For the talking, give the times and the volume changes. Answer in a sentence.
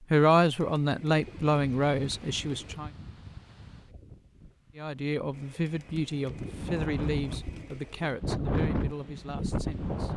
The talking can be heard briefly from 0.1 to 2.9 s; and from 4.8 to 10.1 s, getting quieter.